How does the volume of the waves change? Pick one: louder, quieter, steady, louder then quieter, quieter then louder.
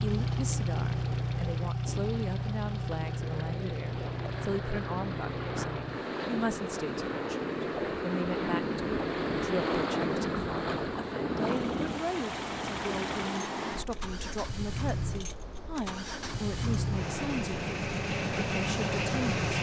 louder then quieter.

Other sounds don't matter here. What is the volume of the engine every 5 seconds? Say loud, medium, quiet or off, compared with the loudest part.
loud, medium, medium, loud.